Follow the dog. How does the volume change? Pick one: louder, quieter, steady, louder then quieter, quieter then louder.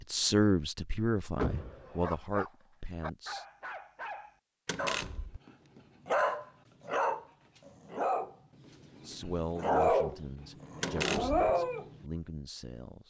louder.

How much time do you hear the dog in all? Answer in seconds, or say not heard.
10 s.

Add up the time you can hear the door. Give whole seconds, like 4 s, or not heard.
2 s.